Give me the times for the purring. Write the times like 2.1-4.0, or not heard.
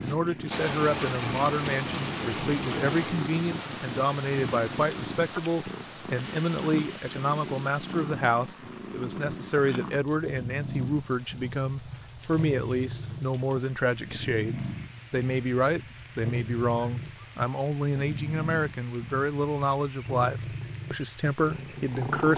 0.0-22.3.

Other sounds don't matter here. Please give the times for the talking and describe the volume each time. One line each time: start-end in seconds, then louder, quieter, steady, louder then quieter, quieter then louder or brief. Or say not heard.
0.0-22.3 steady.